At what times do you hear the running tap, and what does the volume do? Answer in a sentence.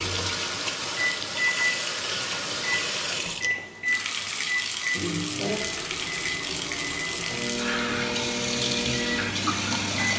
The running tap can be heard from 0.0 to 10.1 s, at a steady volume.